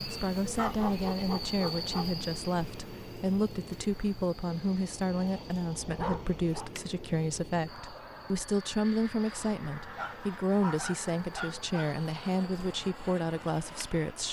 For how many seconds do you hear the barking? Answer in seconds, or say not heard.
5 s.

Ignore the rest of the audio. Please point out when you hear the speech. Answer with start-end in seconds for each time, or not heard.
0.0-14.2.